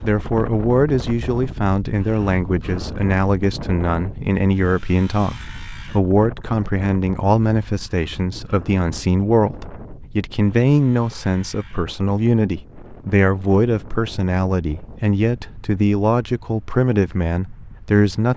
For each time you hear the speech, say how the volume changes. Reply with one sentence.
The speech can be heard from 0.0 to 18.3 s, at a steady volume.